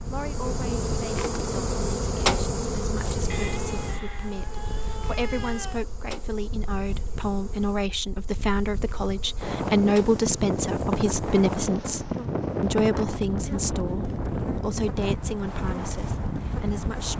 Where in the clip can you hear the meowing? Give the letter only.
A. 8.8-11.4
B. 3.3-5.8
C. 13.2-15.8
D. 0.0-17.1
B.